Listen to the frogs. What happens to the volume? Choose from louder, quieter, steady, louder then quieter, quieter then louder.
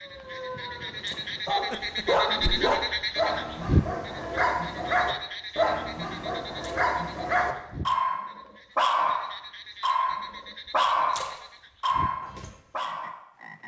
quieter.